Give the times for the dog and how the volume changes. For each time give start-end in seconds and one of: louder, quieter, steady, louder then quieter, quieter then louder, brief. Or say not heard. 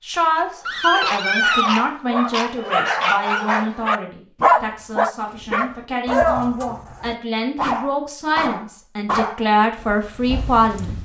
0.7-11.0 quieter.